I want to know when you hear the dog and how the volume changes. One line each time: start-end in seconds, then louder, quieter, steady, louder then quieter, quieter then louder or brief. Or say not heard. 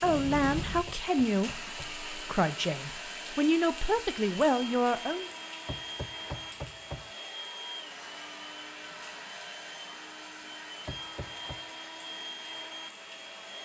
not heard.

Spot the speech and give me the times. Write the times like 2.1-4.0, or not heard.
0.0-5.3.